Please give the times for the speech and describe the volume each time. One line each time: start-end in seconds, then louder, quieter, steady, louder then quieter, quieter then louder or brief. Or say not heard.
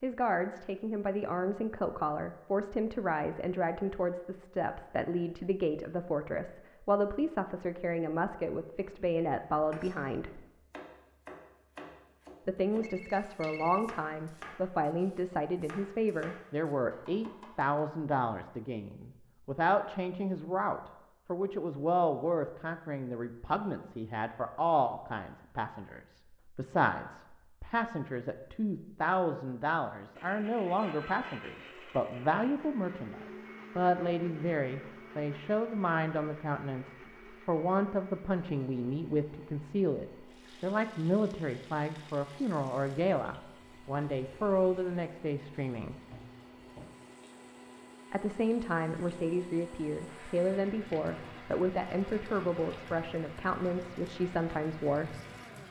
0.0-10.4 steady
12.4-46.0 steady
48.1-55.1 steady.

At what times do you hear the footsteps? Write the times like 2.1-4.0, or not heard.
not heard.